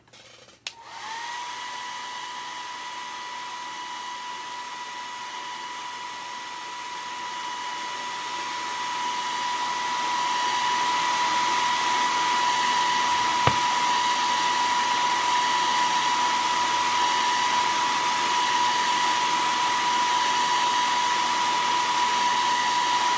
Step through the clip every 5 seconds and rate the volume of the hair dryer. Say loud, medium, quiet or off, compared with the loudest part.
quiet, medium, loud, loud, loud.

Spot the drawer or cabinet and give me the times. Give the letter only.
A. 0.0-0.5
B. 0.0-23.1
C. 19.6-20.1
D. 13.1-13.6
D.